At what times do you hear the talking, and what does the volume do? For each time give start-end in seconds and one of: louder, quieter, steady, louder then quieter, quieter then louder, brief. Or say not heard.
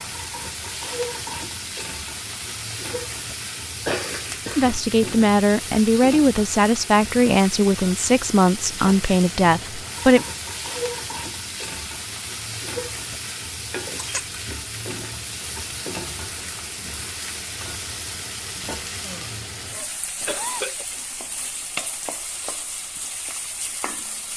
4.5-10.2 steady.